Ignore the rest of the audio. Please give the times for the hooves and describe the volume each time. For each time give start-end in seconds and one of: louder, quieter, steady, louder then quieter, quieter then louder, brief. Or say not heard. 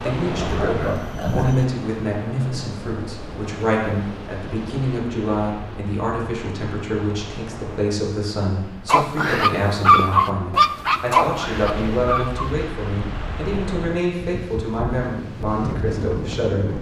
not heard.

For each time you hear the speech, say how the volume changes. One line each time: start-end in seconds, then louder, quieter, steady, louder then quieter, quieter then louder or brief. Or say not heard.
0.0-16.7 steady.